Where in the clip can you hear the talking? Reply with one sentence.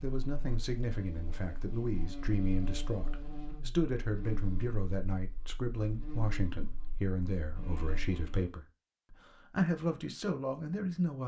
The talking can be heard from 0.0 to 11.2 s.